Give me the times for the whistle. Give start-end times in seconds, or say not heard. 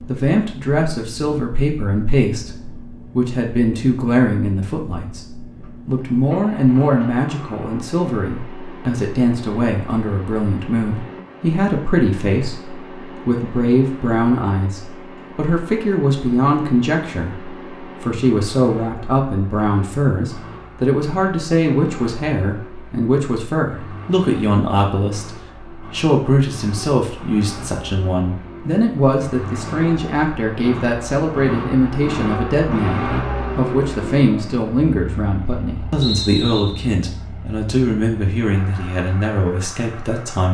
36.0-36.9.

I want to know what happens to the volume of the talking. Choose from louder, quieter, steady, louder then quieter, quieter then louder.
steady.